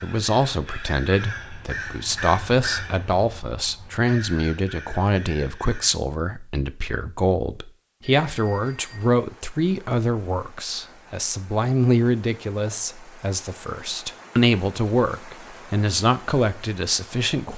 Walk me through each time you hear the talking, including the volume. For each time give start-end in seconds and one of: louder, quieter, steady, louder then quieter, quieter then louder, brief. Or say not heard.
0.0-17.5 steady.